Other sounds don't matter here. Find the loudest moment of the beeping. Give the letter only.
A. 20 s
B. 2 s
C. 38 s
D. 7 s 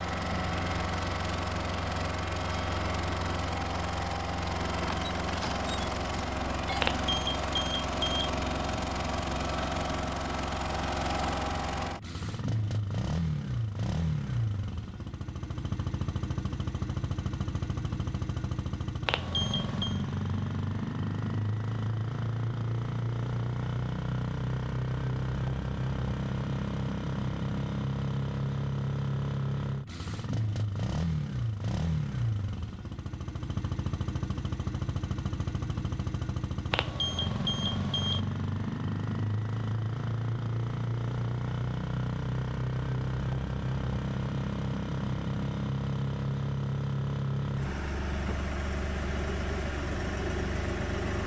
D.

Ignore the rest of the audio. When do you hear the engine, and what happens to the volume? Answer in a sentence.
The engine can be heard from 0.0 to 51.2 s, at a steady volume.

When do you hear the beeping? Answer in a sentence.
The beeping can be heard from 6.8 to 8.3 s, from 19.1 to 20.0 s and from 36.7 to 38.2 s.